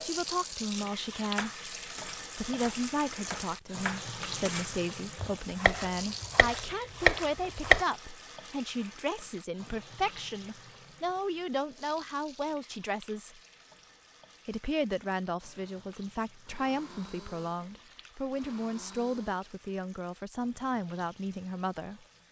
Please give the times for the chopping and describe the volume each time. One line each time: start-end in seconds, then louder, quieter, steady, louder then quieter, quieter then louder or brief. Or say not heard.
1.2-7.8 louder.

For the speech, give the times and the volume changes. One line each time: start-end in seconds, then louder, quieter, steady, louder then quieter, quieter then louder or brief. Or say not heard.
0.0-1.6 brief
2.4-13.4 steady
14.4-22.0 steady.